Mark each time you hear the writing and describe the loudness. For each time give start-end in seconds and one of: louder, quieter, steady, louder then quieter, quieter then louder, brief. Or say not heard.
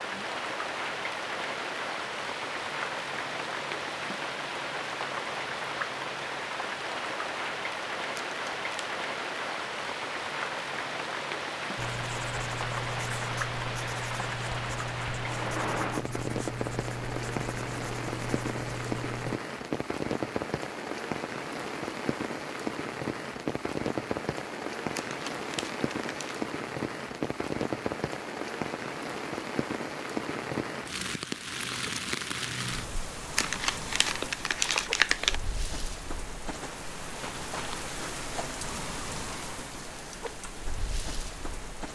11.8-19.4 steady.